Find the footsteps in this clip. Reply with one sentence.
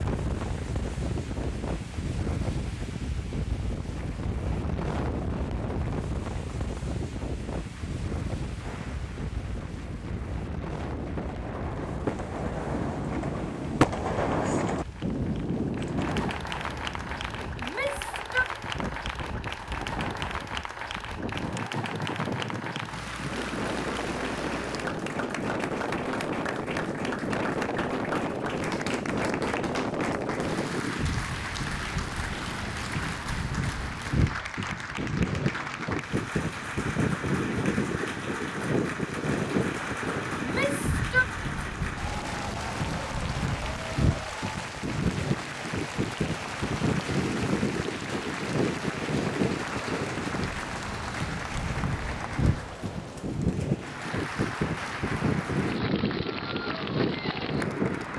The footsteps can't be heard in this clip.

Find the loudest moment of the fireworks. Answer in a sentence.
The volume of the fireworks peaks at 14 seconds.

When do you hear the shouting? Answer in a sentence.
You can hear the shouting from 17.6 to 18.4 s and from 40.4 to 41.2 s.